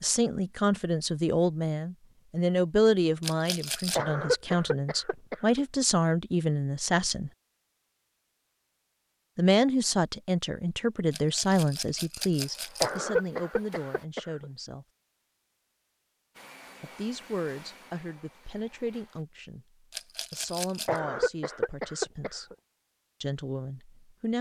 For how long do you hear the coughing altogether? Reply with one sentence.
The coughing can be heard for 5 seconds in total.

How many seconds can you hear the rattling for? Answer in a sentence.
You can hear the rattling for 4 seconds altogether.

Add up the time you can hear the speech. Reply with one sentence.
You can hear the speech for 19 seconds altogether.